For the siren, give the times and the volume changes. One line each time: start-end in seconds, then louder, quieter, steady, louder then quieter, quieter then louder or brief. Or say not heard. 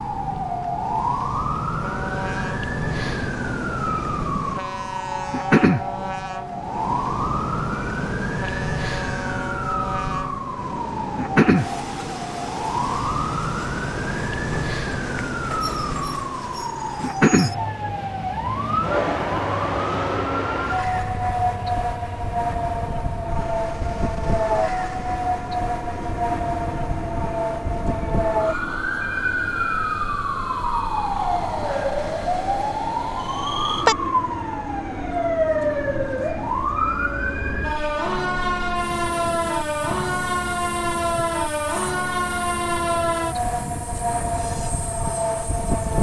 0.0-45.9 steady.